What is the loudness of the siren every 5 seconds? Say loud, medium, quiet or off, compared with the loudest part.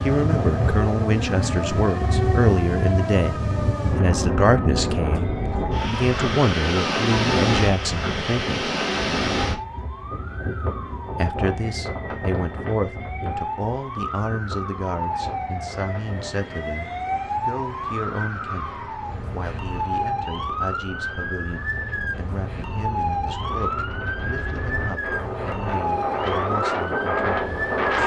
loud, medium, medium, loud, loud, loud.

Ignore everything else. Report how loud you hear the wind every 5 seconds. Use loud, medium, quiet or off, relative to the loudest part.
loud, loud, medium, quiet, quiet, loud.